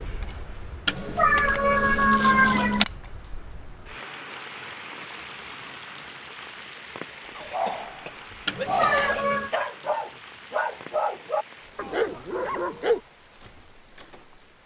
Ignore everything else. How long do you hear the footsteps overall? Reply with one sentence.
You can't hear the footsteps here.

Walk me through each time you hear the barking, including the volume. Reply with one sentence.
You can hear the barking from 7.5 to 13.0 s, at a steady volume.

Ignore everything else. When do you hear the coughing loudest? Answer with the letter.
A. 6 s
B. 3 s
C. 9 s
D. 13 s
C.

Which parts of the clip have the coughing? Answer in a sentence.
The coughing can be heard from 7.3 to 9.2 s.